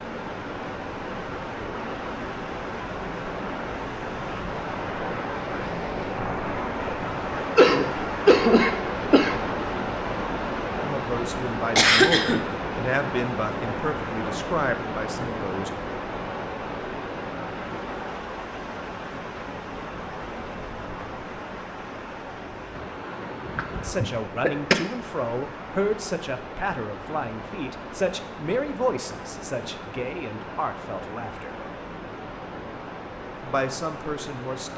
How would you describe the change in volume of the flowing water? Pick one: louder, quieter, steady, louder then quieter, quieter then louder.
quieter.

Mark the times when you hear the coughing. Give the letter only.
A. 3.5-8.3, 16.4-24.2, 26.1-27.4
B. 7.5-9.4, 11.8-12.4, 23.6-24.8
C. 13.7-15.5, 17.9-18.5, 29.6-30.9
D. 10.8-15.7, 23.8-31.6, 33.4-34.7
B.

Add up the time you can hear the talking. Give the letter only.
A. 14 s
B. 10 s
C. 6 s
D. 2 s
A.